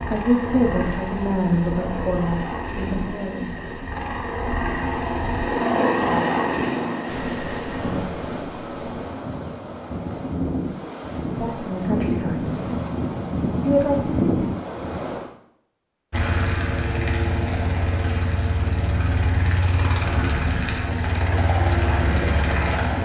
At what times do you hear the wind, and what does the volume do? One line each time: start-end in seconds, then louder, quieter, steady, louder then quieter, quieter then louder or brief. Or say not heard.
0.0-15.3 louder.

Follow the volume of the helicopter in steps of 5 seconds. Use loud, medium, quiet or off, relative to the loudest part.
medium, loud, off, loud, loud.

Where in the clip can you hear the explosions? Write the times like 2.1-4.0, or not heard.
7.0-9.1.